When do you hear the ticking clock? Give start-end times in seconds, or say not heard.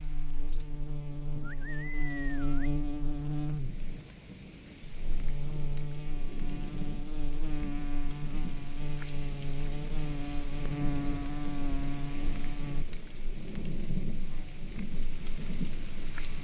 not heard.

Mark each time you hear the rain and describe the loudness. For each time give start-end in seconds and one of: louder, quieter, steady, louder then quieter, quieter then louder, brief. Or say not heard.
0.0-16.4 louder.